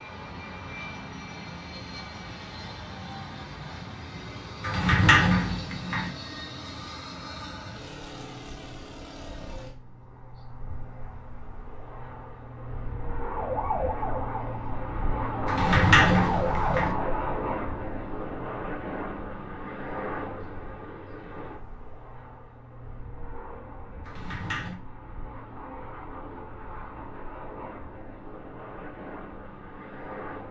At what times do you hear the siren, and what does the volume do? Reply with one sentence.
The siren can be heard from 13.2 to 17.4 s, getting quieter then louder.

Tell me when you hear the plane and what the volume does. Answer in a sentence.
You can hear the plane from 0.0 to 30.4 s, getting louder then quieter.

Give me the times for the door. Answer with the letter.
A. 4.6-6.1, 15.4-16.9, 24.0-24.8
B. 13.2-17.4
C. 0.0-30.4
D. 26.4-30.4
A.